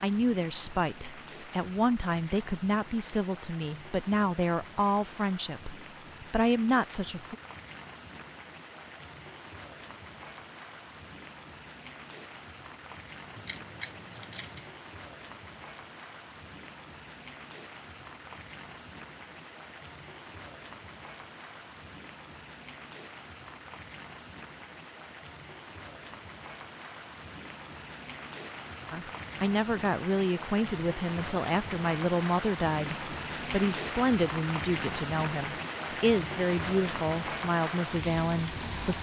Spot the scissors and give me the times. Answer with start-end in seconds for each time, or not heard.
13.3-14.7.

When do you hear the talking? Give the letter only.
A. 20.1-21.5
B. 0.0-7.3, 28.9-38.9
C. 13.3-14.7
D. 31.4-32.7
B.